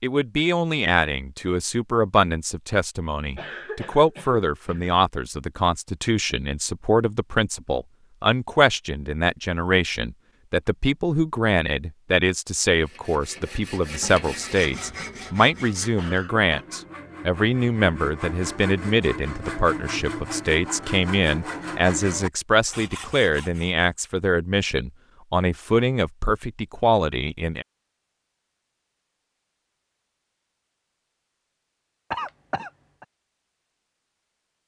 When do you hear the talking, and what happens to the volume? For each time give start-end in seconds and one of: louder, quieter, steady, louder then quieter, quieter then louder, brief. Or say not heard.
0.0-27.6 steady.